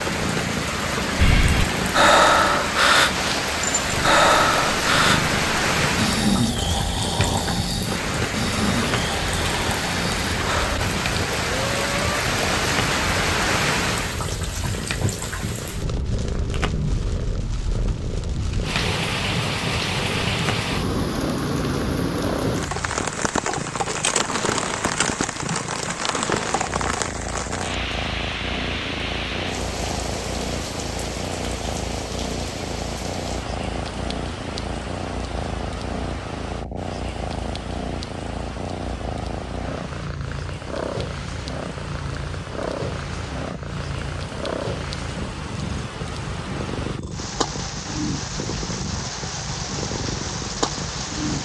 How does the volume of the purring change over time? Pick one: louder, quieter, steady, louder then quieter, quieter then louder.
steady.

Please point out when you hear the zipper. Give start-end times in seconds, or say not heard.
not heard.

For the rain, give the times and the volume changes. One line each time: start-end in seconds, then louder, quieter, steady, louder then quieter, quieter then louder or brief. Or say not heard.
0.0-51.4 quieter.